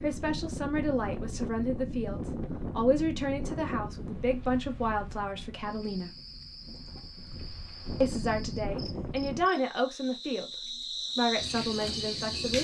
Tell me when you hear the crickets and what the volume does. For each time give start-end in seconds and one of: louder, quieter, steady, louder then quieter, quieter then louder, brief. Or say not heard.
5.6-12.5 louder.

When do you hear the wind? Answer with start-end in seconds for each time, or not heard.
0.0-9.5.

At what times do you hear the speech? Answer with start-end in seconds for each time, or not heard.
0.0-6.2, 8.0-12.5.